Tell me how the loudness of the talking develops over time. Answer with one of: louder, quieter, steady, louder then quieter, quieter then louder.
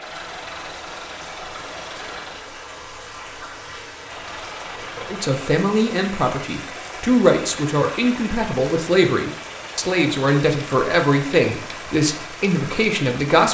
steady.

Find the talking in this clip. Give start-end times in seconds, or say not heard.
5.1-13.5.